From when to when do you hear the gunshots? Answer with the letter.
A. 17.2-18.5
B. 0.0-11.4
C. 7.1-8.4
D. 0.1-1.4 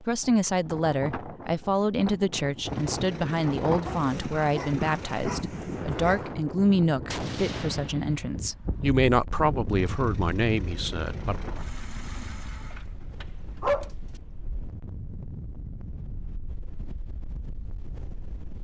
C.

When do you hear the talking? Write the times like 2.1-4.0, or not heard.
0.0-11.4.